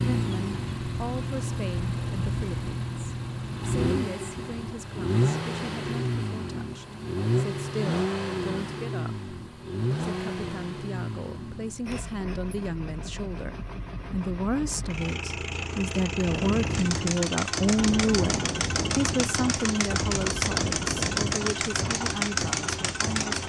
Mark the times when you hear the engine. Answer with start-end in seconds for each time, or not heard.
0.0-23.4.